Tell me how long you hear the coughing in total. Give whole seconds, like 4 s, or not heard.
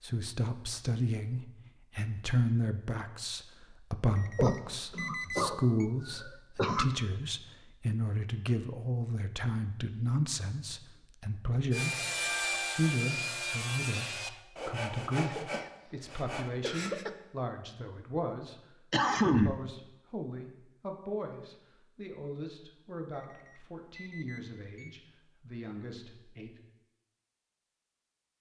5 s.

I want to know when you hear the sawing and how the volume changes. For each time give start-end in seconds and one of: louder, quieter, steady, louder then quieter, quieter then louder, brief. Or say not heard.
11.7-17.1 quieter.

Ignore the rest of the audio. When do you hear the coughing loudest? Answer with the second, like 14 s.
19 s.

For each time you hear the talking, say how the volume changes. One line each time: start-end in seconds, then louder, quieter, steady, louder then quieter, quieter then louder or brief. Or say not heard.
0.0-26.6 quieter.